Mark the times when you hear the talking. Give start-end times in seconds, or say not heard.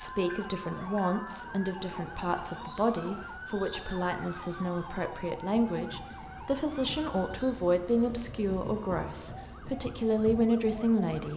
0.0-11.3.